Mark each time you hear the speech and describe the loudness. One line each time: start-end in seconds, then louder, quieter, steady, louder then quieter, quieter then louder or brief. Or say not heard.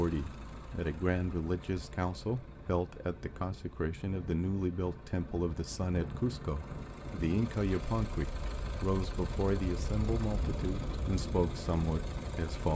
0.0-12.7 steady.